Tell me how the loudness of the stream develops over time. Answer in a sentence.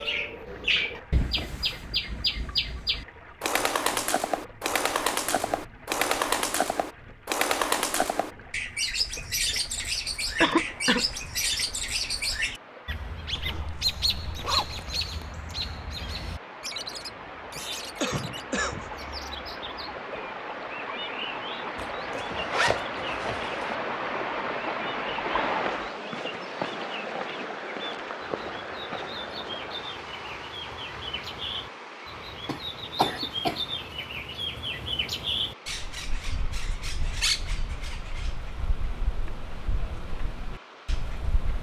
The loudness of the stream goes up, then down.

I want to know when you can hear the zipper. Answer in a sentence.
You can hear the zipper from 13.3 to 14.8 s and from 21.8 to 23.8 s.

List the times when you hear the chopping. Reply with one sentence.
The chopping can't be heard in this clip.